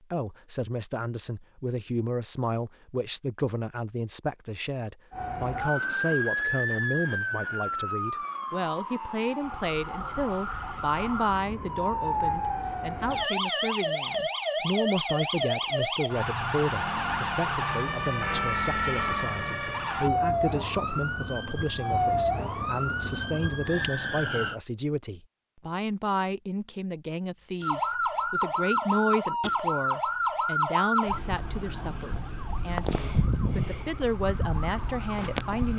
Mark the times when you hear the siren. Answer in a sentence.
You can hear the siren from 5.1 to 24.6 s and from 27.6 to 35.7 s.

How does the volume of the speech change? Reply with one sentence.
The volume of the speech stays about the same.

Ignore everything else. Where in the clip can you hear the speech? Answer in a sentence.
You can hear the speech from 0.1 to 35.7 s.